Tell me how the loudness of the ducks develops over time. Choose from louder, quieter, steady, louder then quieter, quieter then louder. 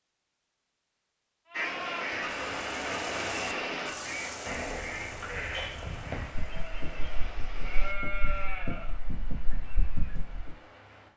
quieter.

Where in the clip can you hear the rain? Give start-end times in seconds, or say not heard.
2.2-11.1.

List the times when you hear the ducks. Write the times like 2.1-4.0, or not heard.
1.5-8.5.